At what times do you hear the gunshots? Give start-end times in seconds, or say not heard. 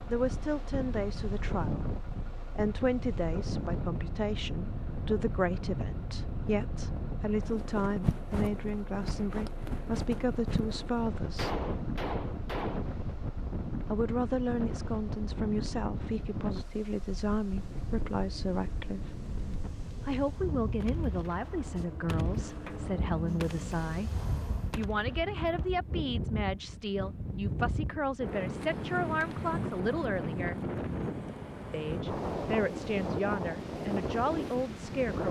11.3-12.8, 20.8-25.7.